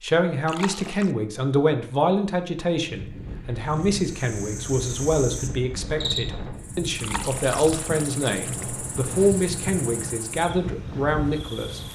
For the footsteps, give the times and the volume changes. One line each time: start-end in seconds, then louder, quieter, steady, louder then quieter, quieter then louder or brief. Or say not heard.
not heard.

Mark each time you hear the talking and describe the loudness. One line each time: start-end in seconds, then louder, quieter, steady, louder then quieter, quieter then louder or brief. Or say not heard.
0.0-11.8 steady.